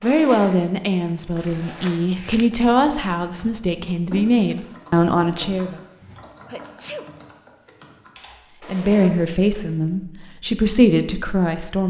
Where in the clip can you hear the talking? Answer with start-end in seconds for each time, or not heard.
0.0-5.8, 8.7-11.8.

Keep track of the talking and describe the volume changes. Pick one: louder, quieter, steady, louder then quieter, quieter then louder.
steady.